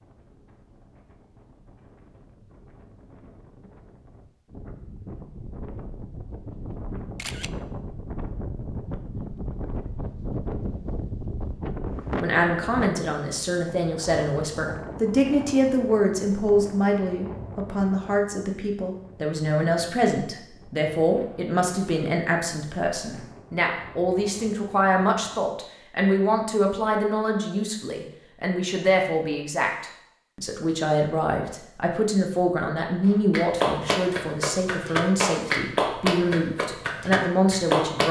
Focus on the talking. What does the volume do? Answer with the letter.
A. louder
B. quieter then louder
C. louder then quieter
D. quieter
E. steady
E.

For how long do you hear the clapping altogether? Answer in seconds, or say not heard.
5 s.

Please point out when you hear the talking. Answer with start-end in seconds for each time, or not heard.
12.2-38.0.